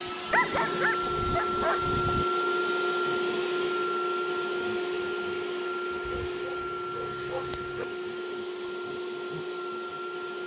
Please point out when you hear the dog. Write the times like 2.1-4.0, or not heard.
0.3-2.2, 6.0-7.8.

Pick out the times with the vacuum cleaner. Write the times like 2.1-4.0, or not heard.
0.0-10.4.